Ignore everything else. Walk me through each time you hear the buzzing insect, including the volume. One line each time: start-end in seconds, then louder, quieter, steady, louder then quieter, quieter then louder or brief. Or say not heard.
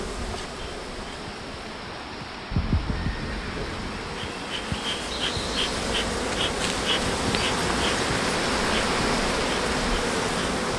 0.0-10.7 louder.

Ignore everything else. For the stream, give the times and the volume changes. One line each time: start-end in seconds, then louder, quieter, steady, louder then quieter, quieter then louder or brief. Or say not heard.
0.0-10.7 louder.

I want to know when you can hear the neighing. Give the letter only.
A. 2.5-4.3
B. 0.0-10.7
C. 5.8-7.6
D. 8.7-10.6
A.